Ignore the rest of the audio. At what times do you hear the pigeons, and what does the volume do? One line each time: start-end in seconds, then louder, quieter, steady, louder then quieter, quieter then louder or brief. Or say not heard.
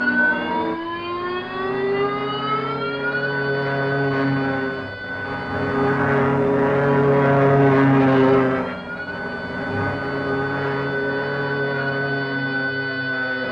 not heard.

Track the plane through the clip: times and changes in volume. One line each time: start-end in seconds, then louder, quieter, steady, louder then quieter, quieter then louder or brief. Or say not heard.
0.0-13.4 louder then quieter.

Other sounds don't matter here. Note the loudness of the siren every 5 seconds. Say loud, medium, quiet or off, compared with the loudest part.
loud, medium, loud.